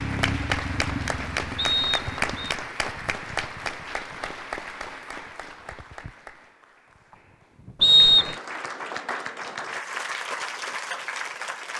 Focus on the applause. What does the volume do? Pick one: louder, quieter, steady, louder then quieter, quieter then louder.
quieter then louder.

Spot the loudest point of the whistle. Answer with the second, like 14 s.
8 s.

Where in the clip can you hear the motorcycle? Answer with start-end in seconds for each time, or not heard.
0.0-2.5.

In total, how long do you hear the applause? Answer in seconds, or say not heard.
12 s.